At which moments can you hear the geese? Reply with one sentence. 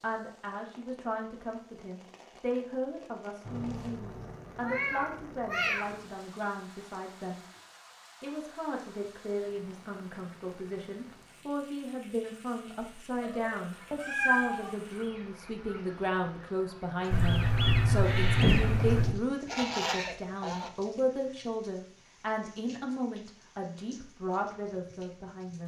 The geese can be heard from 13.7 to 20.7 s.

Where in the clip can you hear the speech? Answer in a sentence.
You can hear the speech from 0.0 to 7.5 s and from 8.2 to 25.6 s.